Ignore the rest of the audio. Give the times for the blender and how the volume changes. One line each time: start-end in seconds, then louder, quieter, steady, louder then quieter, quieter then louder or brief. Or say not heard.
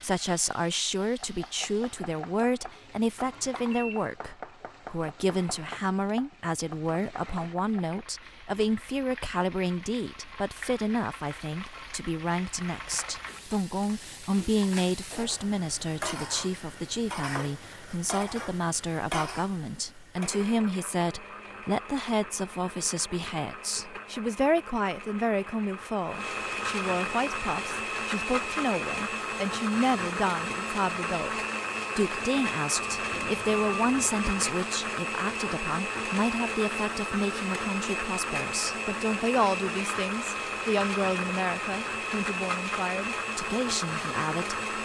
20.1-44.7 louder.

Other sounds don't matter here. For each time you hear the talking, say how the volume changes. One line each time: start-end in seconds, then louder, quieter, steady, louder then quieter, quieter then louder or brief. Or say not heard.
0.0-44.5 steady.